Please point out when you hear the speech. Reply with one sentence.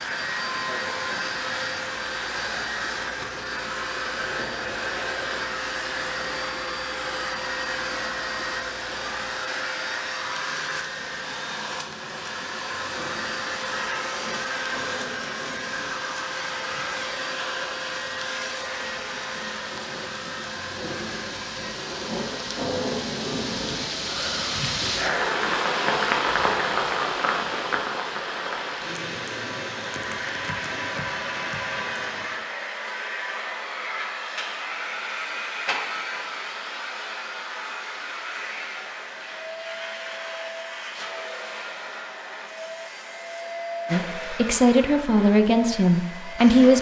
You can hear the speech from 43.9 to 46.7 s.